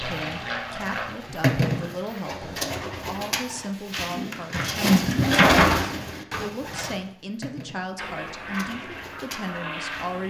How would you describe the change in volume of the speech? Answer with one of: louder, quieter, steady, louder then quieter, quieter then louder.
steady.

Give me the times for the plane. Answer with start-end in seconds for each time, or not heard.
0.0-2.2, 8.0-10.2.